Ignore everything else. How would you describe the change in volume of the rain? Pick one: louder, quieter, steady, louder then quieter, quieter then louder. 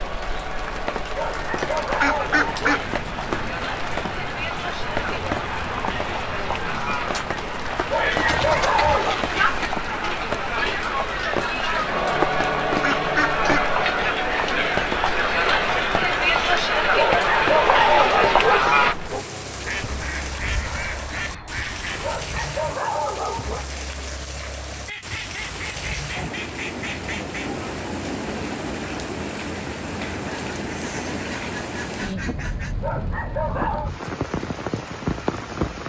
steady.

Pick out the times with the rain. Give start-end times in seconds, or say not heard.
0.0-35.8.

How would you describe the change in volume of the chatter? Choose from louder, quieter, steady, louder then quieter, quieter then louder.
louder.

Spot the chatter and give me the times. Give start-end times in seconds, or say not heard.
0.0-18.9.